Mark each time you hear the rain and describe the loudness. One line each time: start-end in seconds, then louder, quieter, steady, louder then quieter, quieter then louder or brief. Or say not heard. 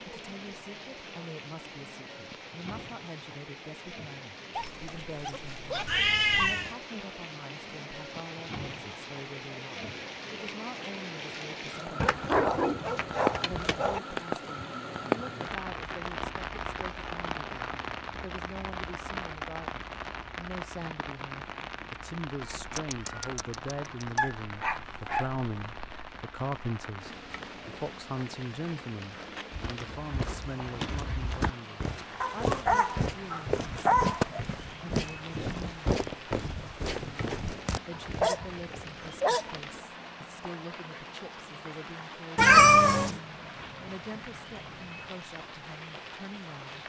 0.0-46.8 louder then quieter.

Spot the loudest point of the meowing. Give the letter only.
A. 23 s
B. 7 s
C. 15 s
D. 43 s
D.